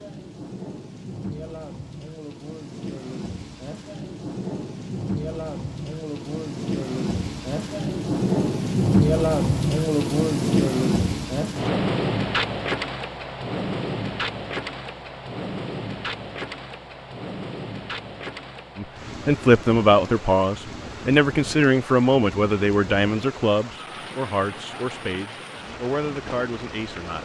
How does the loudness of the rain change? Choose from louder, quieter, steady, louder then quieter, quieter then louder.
louder then quieter.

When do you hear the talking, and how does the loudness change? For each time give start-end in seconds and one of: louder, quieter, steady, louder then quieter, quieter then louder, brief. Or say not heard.
18.8-27.2 quieter.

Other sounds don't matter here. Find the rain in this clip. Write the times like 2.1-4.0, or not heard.
0.0-27.2.